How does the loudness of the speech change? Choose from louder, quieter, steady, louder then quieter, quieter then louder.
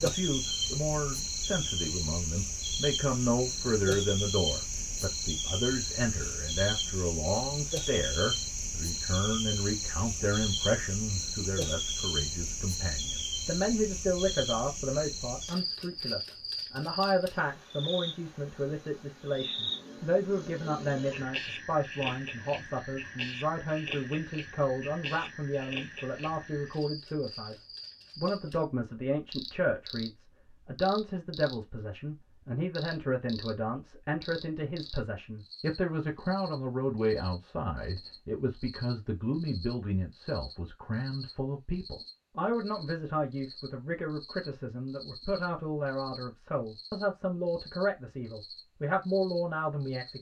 steady.